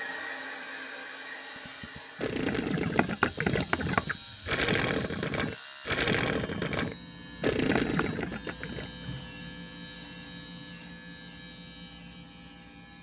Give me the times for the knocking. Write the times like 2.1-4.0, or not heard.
3.0-4.5, 7.8-8.3.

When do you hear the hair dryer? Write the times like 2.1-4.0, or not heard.
0.0-2.4.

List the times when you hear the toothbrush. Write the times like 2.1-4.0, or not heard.
not heard.